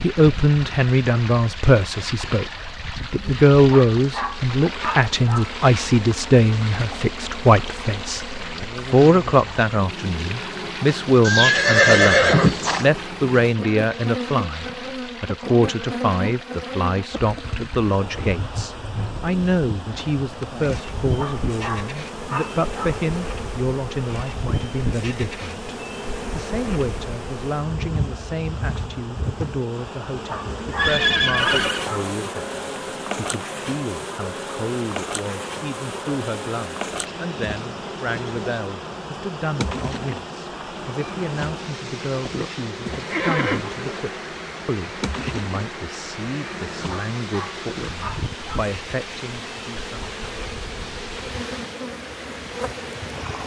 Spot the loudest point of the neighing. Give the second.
12 s.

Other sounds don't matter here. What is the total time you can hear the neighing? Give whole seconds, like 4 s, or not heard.
3 s.